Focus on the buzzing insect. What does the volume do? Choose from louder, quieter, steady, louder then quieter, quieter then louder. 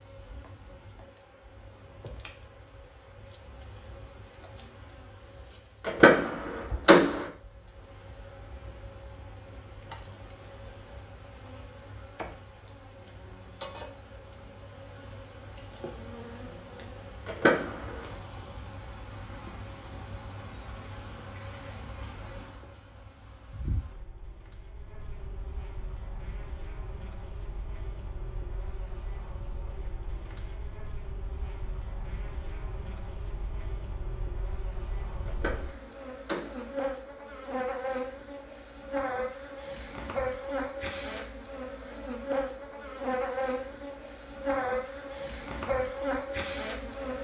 louder.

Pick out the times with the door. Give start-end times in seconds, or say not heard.
5.8-7.2, 17.2-18.1, 35.2-36.7.